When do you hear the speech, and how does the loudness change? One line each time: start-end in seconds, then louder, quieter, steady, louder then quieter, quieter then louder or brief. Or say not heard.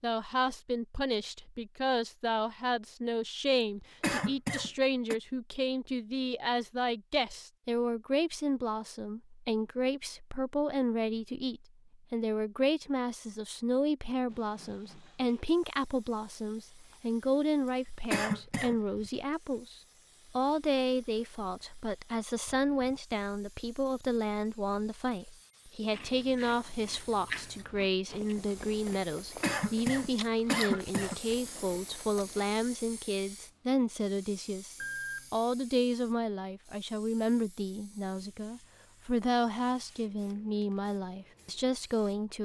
0.0-42.3 steady.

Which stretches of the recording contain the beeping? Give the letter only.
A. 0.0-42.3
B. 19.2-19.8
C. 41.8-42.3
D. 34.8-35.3
D.